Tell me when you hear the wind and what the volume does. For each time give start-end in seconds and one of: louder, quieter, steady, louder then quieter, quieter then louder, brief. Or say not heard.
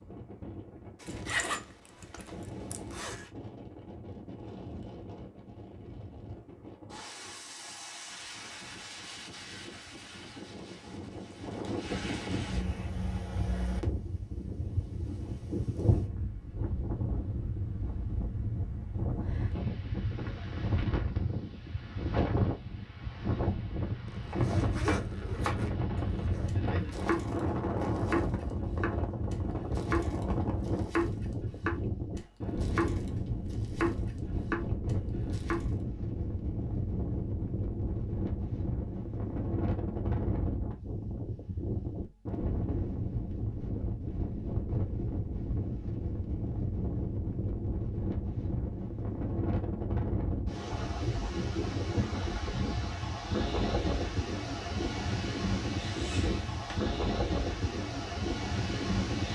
0.0-59.3 louder.